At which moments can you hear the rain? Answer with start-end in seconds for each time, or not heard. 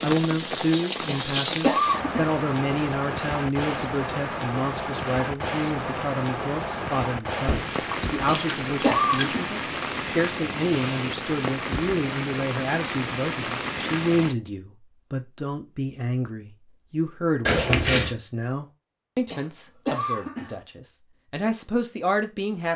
0.0-14.3.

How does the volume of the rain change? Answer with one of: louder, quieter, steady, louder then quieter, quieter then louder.
steady.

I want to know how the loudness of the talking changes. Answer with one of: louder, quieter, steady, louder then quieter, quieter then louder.
steady.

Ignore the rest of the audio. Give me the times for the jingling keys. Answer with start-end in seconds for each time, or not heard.
7.5-9.3, 17.4-18.1.